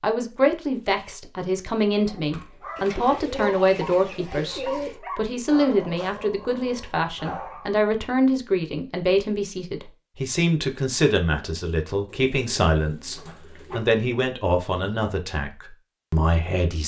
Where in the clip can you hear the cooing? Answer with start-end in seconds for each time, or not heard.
2.8-5.0, 12.1-13.8.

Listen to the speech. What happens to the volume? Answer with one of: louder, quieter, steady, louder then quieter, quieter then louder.
steady.